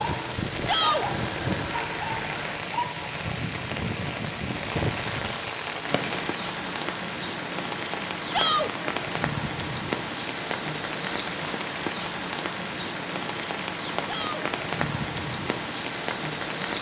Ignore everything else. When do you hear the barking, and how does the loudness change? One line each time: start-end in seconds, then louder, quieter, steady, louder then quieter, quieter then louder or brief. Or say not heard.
not heard.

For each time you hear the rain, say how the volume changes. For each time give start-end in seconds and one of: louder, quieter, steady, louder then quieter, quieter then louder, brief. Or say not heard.
0.0-16.7 steady.